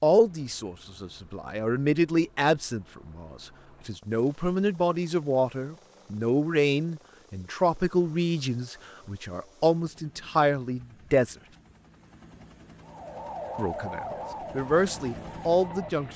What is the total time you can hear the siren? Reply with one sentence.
You can hear the siren for 3 seconds altogether.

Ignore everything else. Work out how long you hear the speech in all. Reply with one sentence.
The speech can be heard for 14 seconds in total.